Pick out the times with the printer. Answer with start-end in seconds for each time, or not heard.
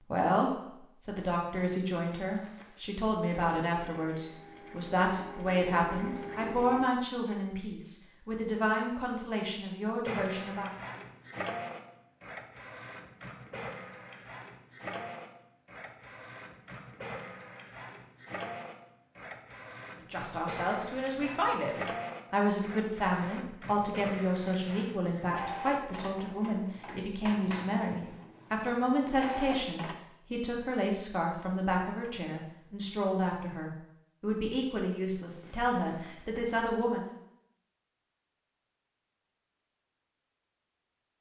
3.5-6.9, 10.1-29.9.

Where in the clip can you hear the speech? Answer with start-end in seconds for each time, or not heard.
0.1-10.7, 20.1-37.1.